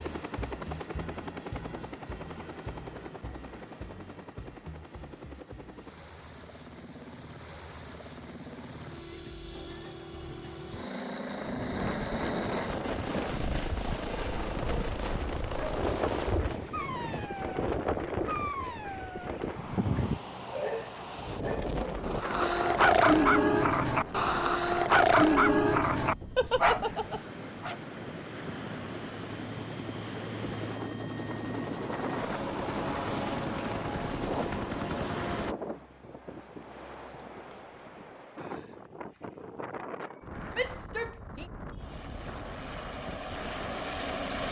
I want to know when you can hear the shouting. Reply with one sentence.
You can hear the shouting from 40.5 to 41.5 s.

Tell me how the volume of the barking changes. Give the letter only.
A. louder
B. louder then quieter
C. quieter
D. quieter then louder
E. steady
A.